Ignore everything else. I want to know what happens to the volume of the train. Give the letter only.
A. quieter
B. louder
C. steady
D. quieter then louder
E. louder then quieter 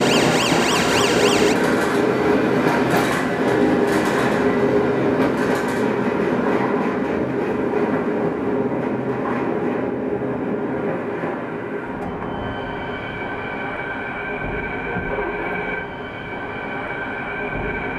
A.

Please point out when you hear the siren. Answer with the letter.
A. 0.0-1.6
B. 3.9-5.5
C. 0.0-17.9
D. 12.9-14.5
A.